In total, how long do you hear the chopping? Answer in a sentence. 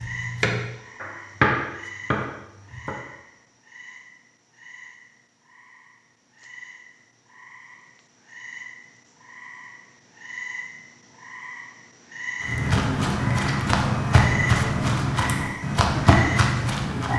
You can hear the chopping for 3 seconds altogether.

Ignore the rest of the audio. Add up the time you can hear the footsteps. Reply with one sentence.
You can hear the footsteps for 5 seconds altogether.